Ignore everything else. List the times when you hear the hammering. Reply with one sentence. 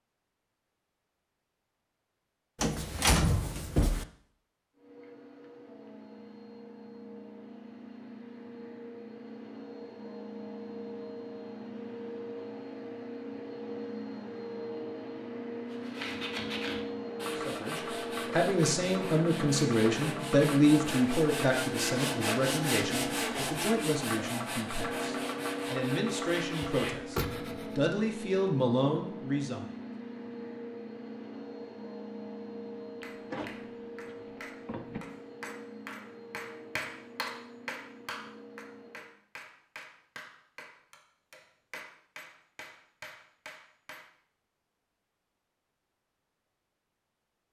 The hammering can be heard from 33.0 to 44.1 s.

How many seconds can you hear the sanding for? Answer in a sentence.
You can hear the sanding for 12 seconds altogether.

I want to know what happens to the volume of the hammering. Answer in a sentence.
The volume of the hammering goes up, then down.